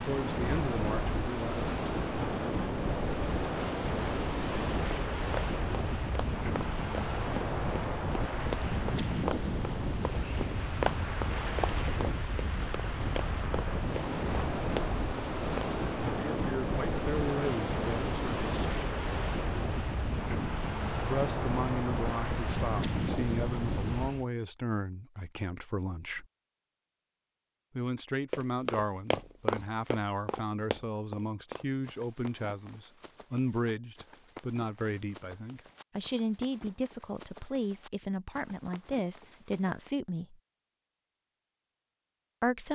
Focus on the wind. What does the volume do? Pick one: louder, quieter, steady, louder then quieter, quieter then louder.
steady.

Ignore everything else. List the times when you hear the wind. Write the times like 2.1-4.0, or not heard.
0.0-24.2.